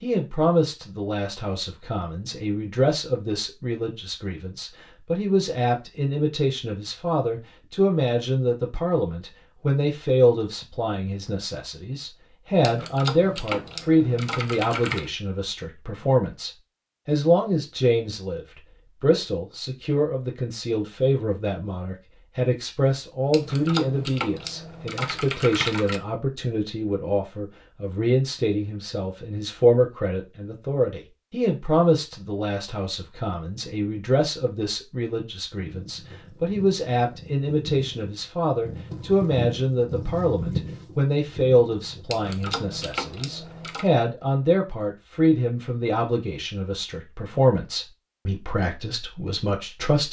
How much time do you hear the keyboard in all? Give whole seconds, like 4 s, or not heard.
7 s.